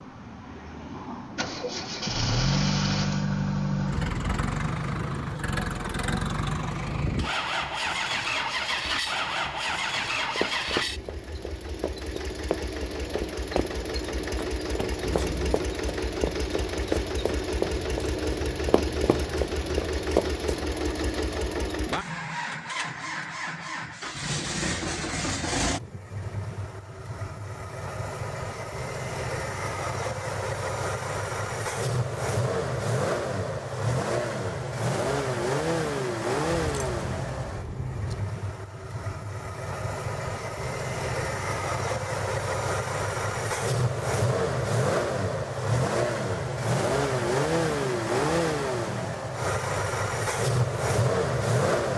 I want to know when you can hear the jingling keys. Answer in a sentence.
You can hear the jingling keys from 15.0 to 15.7 s, from 17.8 to 19.8 s and from 36.5 to 38.2 s.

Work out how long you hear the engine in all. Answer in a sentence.
The engine can be heard for 52 seconds in total.